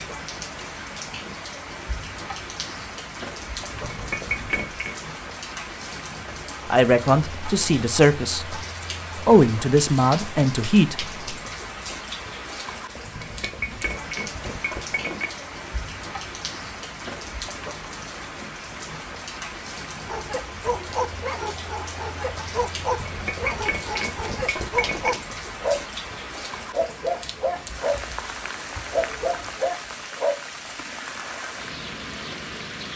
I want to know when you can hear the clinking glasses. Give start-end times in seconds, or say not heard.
3.6-5.0, 12.9-15.3, 22.8-25.2.